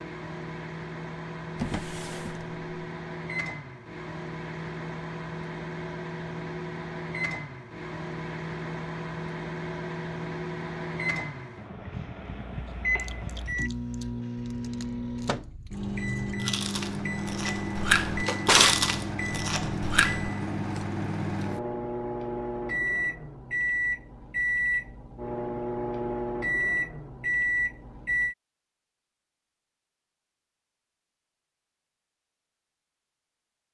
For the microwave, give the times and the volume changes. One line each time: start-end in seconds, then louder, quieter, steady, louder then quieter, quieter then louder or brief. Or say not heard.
0.0-28.4 louder.